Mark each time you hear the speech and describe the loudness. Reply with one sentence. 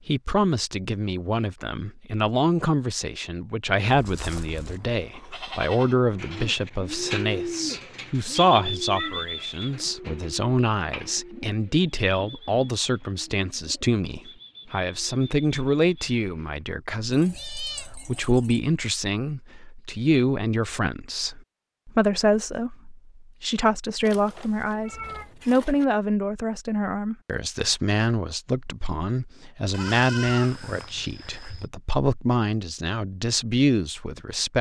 The speech can be heard from 0.1 to 34.5 s, at a steady volume.